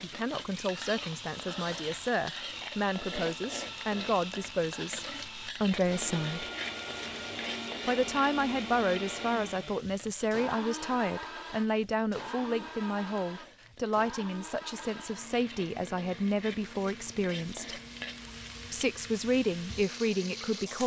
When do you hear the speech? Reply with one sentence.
The speech can be heard from 0.0 to 6.5 s, from 7.8 to 17.8 s and from 18.7 to 20.8 s.